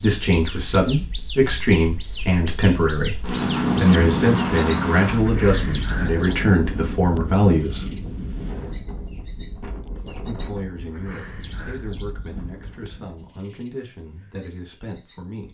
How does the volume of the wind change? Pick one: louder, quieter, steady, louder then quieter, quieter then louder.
louder then quieter.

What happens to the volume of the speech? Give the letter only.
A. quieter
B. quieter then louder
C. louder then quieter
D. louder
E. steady
A.